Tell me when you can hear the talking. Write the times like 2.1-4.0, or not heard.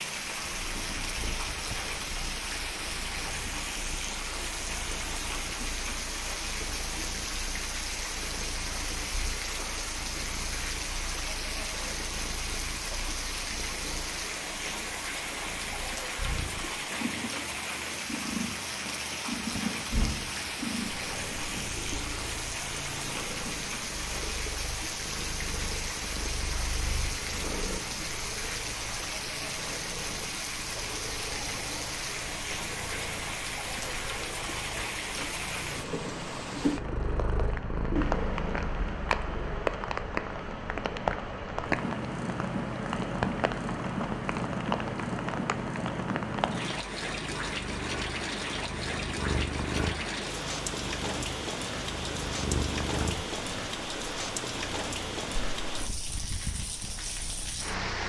not heard.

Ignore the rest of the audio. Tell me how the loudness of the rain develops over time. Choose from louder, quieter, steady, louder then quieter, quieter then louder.
steady.